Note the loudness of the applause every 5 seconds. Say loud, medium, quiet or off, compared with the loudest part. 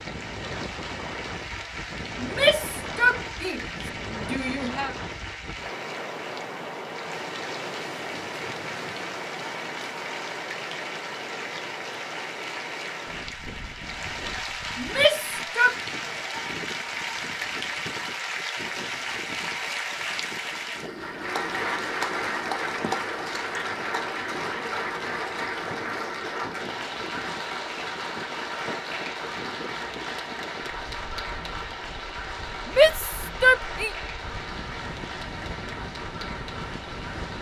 medium, medium, medium, loud, loud, loud, medium, medium.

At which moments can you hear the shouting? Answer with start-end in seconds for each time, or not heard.
2.2-5.0, 14.8-15.8, 32.6-33.9.